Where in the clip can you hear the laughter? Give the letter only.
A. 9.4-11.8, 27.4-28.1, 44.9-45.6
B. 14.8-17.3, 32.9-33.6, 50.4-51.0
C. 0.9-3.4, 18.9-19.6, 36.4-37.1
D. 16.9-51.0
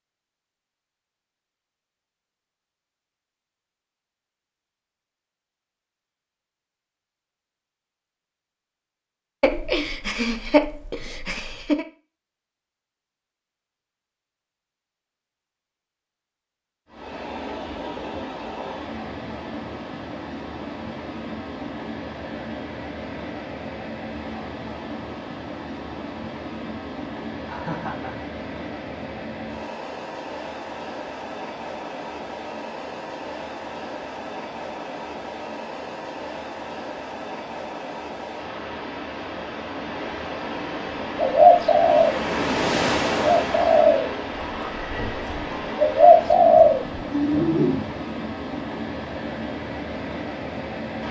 A.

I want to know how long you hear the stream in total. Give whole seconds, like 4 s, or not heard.
34 s.